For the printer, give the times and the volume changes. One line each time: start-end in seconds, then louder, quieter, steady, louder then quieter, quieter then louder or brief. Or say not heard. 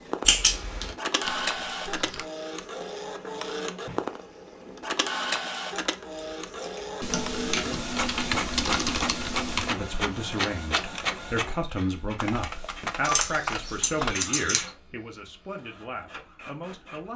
0.0-17.1 quieter.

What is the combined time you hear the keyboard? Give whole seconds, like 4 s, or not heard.
6 s.